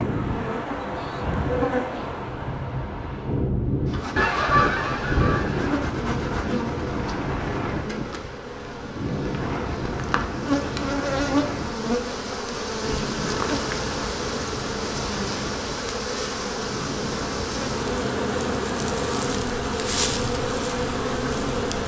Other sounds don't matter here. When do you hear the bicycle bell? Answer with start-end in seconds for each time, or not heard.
not heard.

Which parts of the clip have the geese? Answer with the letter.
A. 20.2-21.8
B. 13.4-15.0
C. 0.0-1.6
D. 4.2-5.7
D.